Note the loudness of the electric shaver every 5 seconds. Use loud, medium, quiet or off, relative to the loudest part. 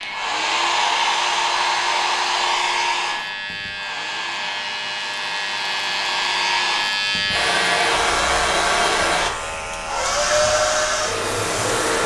medium, loud, medium.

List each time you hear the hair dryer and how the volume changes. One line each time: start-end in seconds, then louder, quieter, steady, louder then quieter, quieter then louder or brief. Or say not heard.
0.0-12.0 quieter then louder.